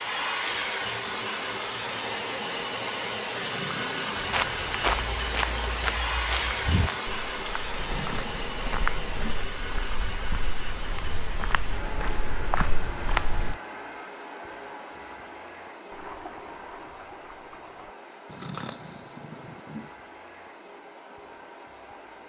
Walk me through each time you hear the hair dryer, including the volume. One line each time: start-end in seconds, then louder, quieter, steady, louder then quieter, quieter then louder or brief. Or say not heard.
0.0-22.2 quieter.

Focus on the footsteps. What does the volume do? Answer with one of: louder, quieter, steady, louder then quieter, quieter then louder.
quieter then louder.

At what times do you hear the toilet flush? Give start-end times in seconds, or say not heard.
15.9-17.9.